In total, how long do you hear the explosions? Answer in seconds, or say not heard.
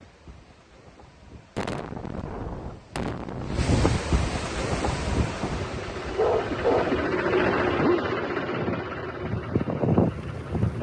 2 s.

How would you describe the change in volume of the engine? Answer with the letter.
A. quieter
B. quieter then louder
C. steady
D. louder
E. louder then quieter
E.